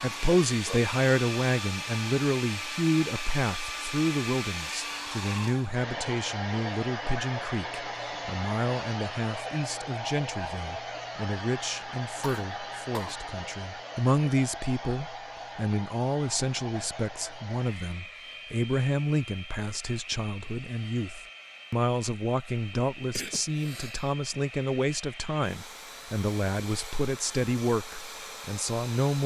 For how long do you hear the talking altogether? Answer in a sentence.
The talking can be heard for 29 seconds in total.